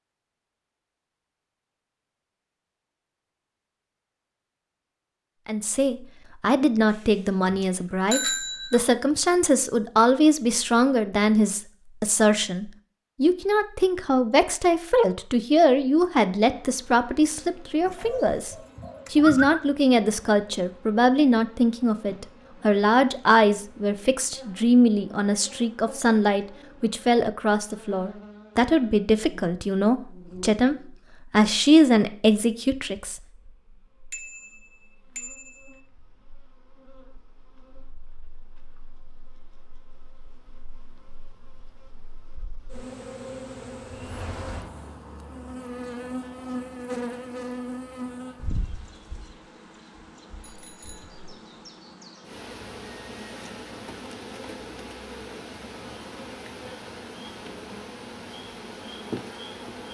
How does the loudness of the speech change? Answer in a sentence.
The volume of the speech stays about the same.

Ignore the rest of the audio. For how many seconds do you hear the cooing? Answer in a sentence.
The cooing can be heard for 2 seconds in total.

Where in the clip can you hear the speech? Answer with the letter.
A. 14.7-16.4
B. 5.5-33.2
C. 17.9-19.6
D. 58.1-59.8
B.